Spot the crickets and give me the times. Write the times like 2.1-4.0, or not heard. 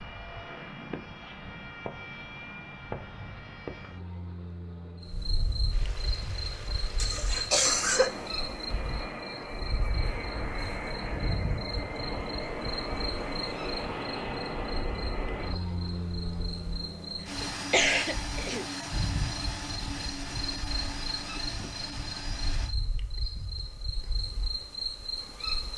5.0-25.7.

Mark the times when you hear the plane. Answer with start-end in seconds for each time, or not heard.
0.0-22.8.